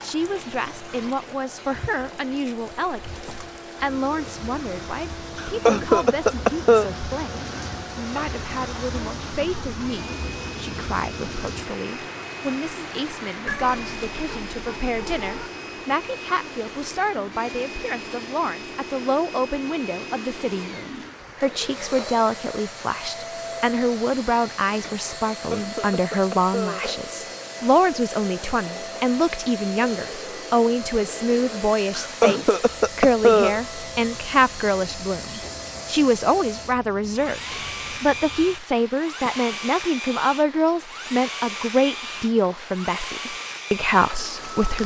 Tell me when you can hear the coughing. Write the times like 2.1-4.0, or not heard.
5.3-6.9, 25.3-26.9, 31.9-33.6.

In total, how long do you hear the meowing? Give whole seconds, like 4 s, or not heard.
2 s.